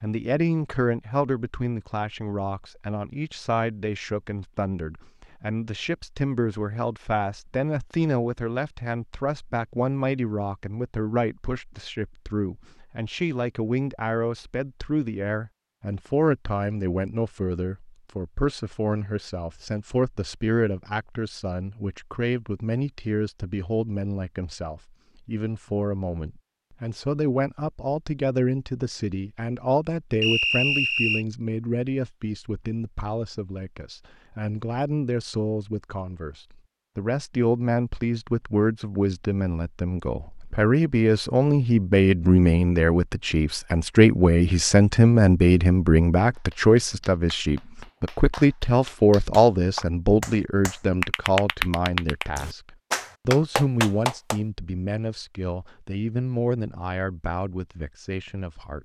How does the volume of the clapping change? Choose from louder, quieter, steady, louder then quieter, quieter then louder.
louder.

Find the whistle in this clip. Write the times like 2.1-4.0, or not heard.
30.2-31.2.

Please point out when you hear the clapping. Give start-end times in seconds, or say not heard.
46.3-54.4.